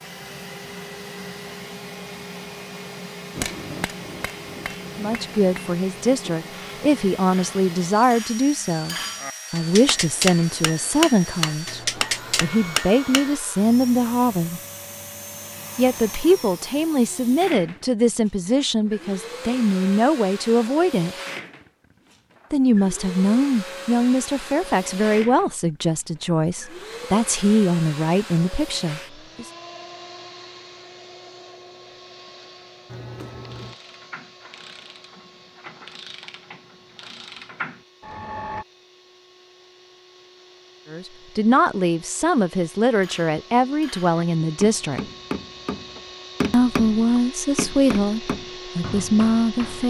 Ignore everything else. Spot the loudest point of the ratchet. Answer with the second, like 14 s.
38 s.